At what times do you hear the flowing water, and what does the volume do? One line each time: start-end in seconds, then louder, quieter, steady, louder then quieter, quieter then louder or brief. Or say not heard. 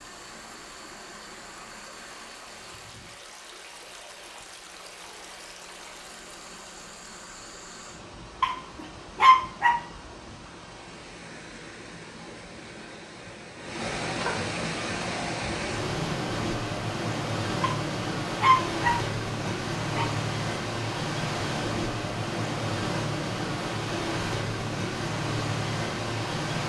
0.0-26.6 louder.